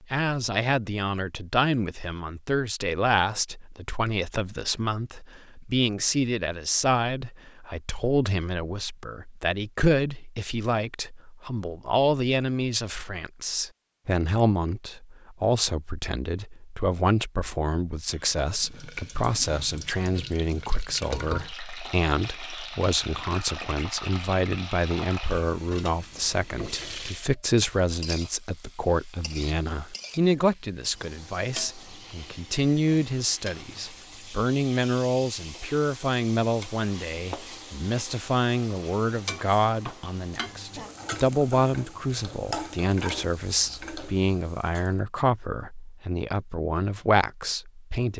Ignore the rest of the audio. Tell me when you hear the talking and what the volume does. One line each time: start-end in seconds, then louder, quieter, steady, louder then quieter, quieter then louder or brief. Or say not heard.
0.0-48.1 steady.